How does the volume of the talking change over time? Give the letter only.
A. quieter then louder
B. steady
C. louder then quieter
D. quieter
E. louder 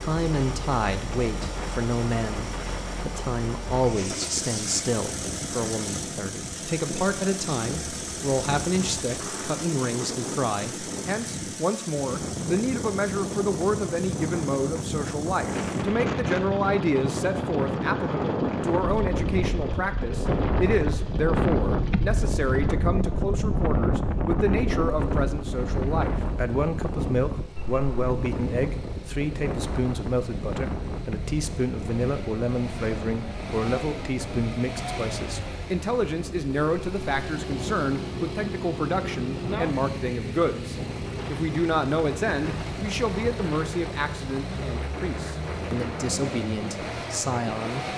B.